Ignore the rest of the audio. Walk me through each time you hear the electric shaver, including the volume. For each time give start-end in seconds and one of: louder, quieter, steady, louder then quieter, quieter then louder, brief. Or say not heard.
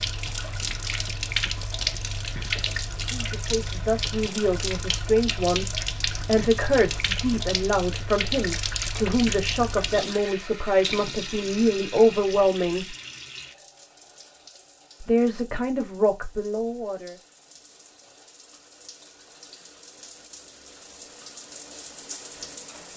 not heard.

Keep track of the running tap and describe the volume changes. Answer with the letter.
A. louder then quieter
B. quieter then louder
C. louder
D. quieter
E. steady
B.